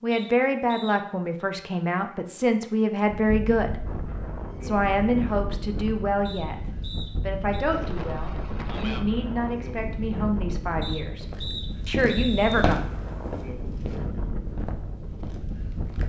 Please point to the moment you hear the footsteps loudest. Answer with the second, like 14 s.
13 s.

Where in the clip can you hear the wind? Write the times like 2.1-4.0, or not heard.
3.0-16.0.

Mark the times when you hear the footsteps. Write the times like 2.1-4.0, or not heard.
11.1-16.0.